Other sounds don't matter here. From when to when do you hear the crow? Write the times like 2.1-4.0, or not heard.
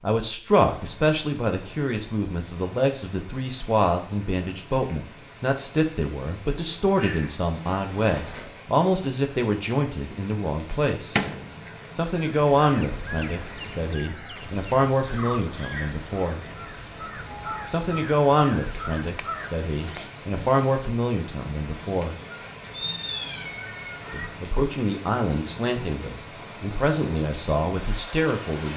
10.7-20.5.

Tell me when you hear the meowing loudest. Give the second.
23 s.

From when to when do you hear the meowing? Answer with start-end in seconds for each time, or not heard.
6.9-8.6, 22.3-24.2.